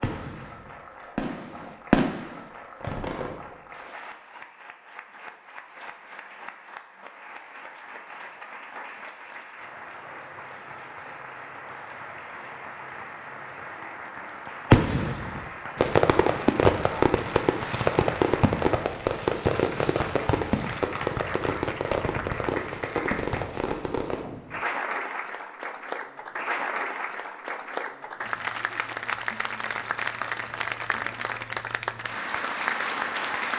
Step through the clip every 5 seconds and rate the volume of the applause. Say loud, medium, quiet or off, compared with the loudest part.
quiet, quiet, medium, medium, medium, loud, loud.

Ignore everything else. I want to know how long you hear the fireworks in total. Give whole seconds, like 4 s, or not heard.
13 s.